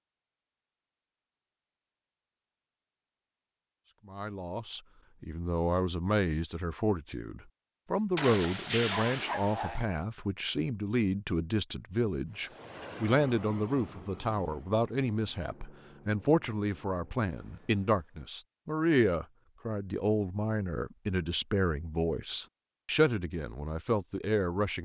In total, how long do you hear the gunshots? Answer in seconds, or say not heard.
2 s.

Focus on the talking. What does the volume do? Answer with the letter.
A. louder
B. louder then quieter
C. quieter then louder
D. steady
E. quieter
D.